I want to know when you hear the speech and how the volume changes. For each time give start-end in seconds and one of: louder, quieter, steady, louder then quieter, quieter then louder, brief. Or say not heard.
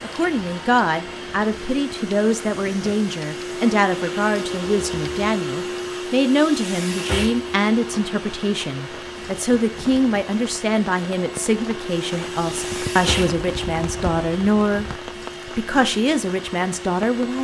0.0-17.3 steady.